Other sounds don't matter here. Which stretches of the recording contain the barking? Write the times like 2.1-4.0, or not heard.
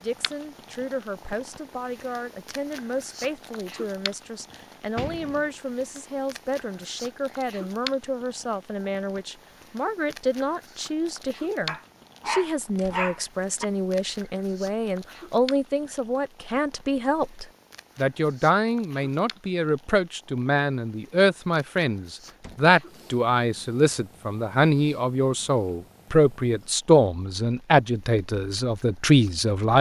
11.7-13.7.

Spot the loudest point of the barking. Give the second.
13 s.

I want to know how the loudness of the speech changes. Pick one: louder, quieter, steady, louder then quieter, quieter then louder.
louder.